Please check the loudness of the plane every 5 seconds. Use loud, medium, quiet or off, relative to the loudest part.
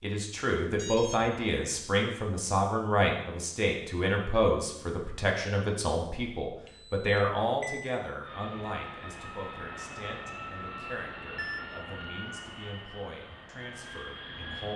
off, loud, loud.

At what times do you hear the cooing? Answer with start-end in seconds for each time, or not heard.
not heard.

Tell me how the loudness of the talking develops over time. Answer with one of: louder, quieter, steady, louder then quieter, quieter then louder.
quieter.